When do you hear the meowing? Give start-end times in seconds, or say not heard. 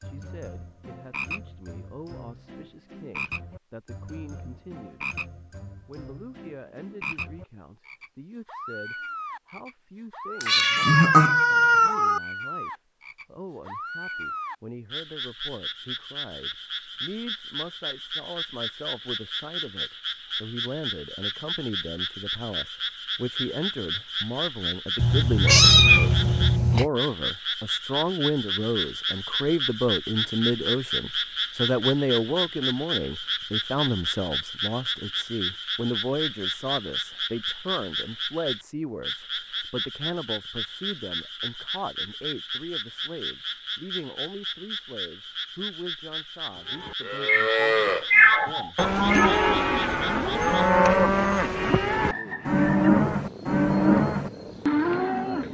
10.4-12.2, 24.9-26.9, 47.2-49.3.